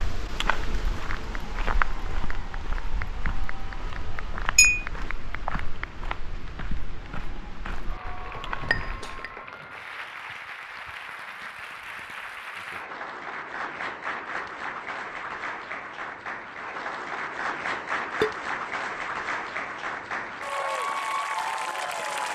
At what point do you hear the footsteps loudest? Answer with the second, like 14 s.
2 s.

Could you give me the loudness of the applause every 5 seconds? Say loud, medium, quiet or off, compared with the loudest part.
quiet, quiet, medium, loud, loud.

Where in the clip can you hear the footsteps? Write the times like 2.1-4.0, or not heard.
0.0-9.3.